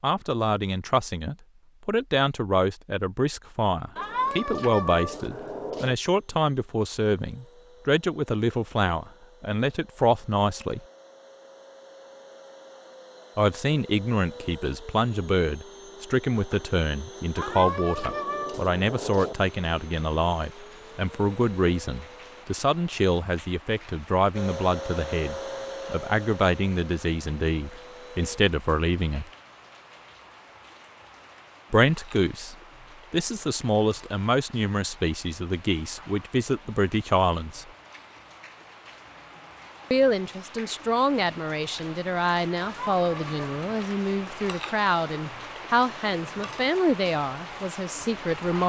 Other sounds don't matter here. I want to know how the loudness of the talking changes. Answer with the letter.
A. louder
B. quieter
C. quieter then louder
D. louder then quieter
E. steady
E.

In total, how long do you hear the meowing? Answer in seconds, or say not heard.
5 s.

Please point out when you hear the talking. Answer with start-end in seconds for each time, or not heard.
0.0-10.8, 13.3-29.3, 31.7-37.6, 39.9-48.6.